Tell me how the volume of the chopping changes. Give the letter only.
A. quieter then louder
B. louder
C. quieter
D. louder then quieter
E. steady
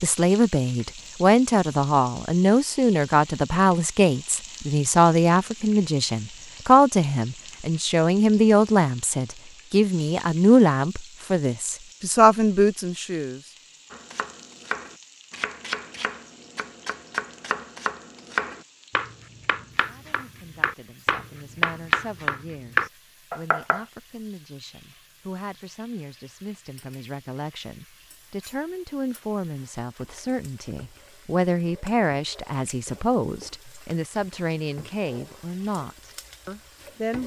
B.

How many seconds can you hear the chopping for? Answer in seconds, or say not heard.
10 s.